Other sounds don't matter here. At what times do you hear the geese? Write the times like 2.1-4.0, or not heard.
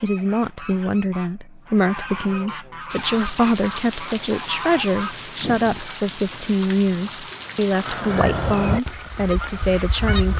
0.0-5.8, 7.8-10.3.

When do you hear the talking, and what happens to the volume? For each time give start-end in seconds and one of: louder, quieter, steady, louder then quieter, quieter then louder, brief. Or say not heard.
0.0-10.3 steady.